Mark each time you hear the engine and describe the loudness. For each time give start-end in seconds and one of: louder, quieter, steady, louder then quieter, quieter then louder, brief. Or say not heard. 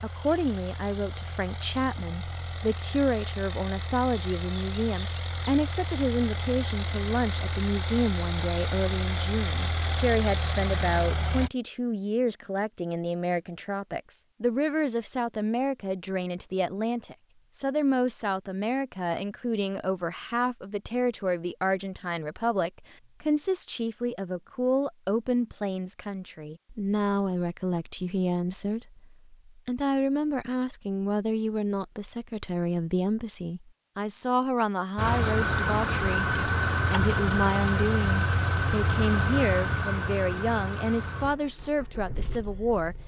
0.0-11.5 louder
35.0-43.0 quieter.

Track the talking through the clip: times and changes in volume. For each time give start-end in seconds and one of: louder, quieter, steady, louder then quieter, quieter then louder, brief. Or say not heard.
0.0-43.0 steady.